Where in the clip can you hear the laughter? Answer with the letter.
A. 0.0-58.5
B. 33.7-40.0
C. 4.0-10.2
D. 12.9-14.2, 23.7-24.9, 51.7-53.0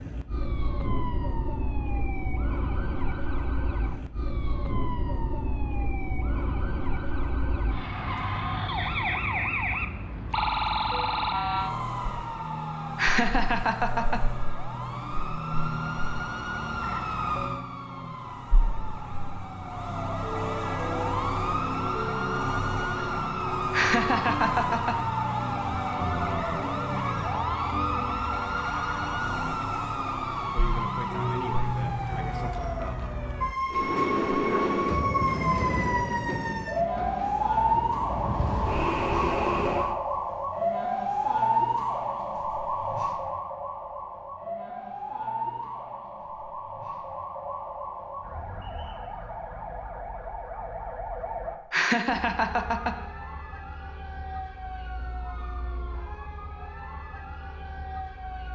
D.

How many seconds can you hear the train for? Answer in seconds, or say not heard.
6 s.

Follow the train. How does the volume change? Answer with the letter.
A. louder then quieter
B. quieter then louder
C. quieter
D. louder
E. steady
B.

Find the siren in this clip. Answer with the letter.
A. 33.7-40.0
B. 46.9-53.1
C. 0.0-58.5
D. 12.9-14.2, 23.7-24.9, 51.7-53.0
C.